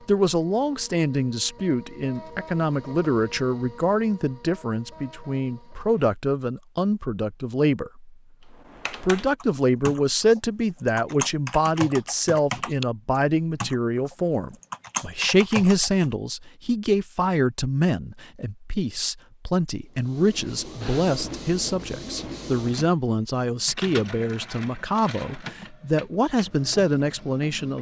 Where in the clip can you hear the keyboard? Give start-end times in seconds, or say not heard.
8.6-16.1.